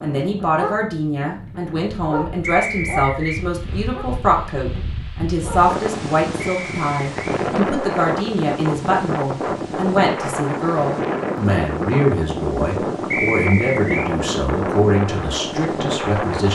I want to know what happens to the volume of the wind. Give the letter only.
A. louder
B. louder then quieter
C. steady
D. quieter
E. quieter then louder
A.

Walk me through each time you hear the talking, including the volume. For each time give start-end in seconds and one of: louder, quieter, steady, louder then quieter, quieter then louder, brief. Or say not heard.
0.0-16.5 steady.